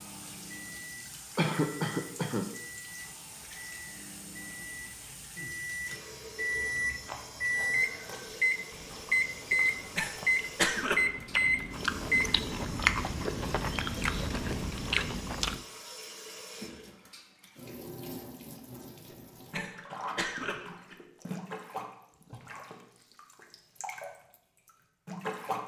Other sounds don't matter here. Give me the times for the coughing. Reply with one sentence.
The coughing can be heard from 1.4 to 2.5 s, from 9.5 to 11.1 s and from 19.1 to 20.9 s.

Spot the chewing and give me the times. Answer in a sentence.
The chewing can be heard from 6.7 to 15.6 s.